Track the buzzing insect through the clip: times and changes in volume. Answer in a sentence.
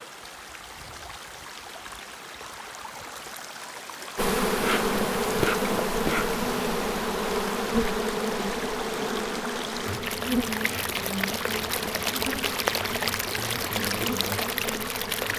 You can hear the buzzing insect from 4.2 to 15.3 s, getting quieter.